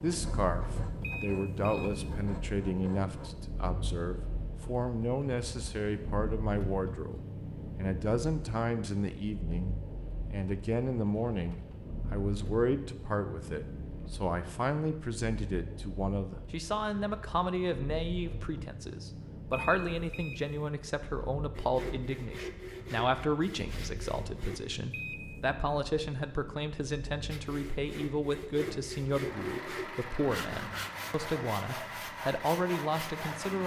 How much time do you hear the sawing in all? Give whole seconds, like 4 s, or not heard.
13 s.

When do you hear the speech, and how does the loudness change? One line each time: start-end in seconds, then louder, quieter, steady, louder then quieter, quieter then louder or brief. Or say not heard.
0.0-33.6 steady.